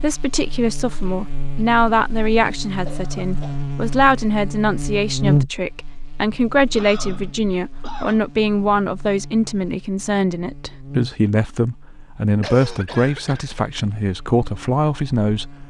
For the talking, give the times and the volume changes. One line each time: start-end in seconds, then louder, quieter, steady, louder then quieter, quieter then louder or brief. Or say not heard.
0.0-15.6 steady.